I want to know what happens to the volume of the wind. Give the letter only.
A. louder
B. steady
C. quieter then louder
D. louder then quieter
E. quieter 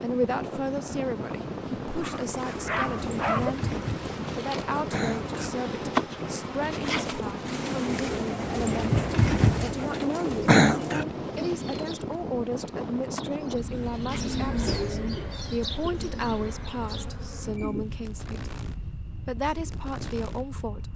E.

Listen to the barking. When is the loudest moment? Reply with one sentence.
The volume of the barking peaks at 3 seconds.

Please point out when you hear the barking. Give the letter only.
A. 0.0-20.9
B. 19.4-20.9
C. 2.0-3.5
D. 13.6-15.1
C.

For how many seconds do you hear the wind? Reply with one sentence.
The wind can be heard for 21 seconds in total.